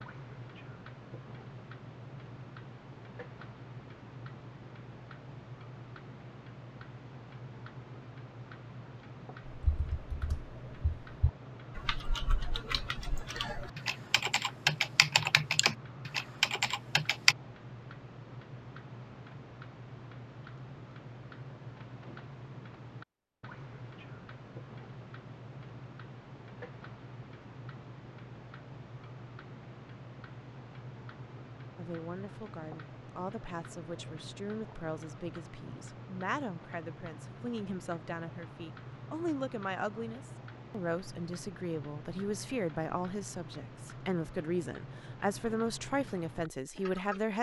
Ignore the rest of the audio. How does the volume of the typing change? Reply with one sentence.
The volume of the typing goes up.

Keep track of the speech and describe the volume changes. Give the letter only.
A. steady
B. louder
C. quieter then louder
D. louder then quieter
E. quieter
B.